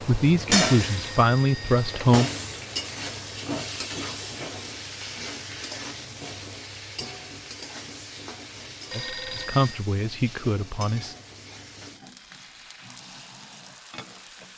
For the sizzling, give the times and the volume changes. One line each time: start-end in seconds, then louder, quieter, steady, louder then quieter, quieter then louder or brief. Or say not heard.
0.0-14.5 quieter.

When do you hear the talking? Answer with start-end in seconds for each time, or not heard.
0.1-2.3, 8.9-11.2.